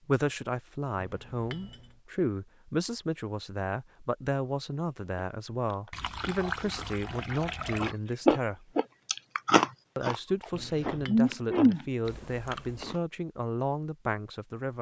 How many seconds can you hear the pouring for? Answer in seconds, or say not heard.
4 s.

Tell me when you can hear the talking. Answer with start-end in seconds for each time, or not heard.
0.1-8.7, 9.9-14.7.